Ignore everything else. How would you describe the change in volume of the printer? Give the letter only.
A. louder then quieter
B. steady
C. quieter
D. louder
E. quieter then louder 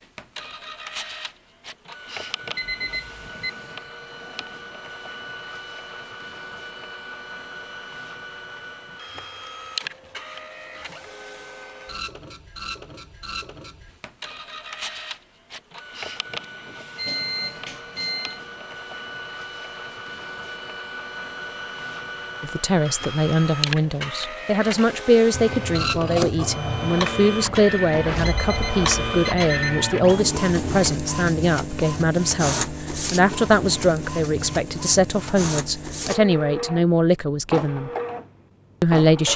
D.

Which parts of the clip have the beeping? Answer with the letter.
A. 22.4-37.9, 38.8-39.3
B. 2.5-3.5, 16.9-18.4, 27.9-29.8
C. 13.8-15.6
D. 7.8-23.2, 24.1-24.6
B.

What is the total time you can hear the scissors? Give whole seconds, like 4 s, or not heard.
2 s.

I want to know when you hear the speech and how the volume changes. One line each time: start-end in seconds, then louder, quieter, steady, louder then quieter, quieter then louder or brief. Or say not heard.
22.4-37.9 steady
38.8-39.3 brief.